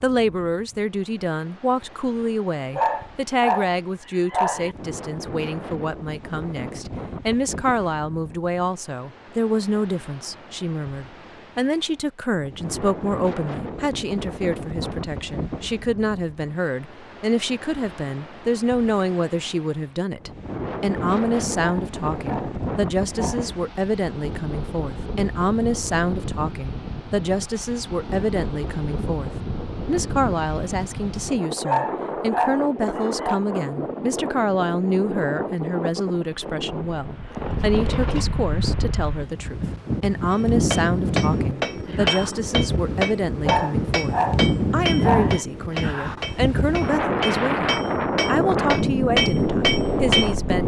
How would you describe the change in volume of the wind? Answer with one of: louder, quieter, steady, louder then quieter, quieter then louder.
louder.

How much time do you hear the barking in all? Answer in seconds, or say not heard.
8 s.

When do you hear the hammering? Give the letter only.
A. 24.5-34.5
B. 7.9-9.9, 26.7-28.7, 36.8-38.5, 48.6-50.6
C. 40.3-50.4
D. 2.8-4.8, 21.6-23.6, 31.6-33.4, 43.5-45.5
C.